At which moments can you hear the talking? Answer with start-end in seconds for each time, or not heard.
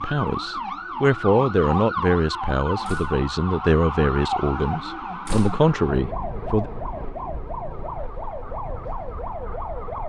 0.0-6.7.